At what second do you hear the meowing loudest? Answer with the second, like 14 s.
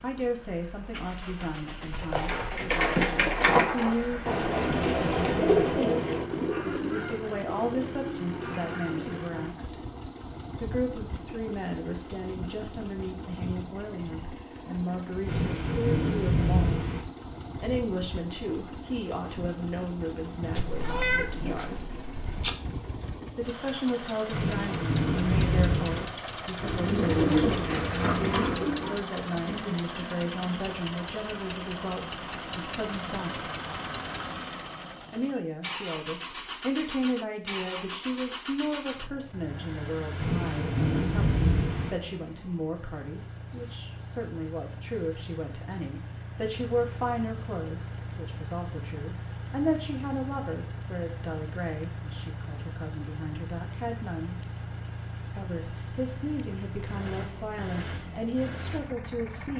21 s.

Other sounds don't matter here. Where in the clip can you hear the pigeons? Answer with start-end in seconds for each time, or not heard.
2.1-9.4, 26.6-29.8.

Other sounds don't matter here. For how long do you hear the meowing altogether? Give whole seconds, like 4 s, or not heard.
2 s.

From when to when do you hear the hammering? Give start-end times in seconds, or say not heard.
not heard.